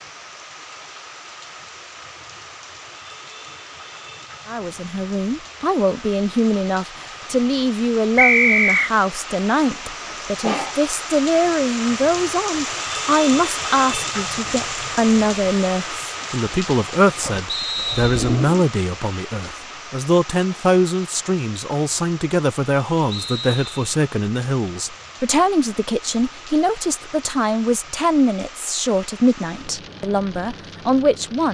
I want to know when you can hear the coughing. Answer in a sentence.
You can hear the coughing from 9.6 to 10.8 s and from 17.2 to 18.6 s.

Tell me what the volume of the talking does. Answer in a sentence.
The loudness of the talking stays about the same.